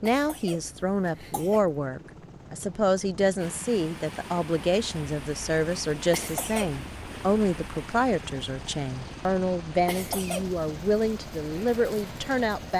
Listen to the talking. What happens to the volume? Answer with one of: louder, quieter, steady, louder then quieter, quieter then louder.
steady.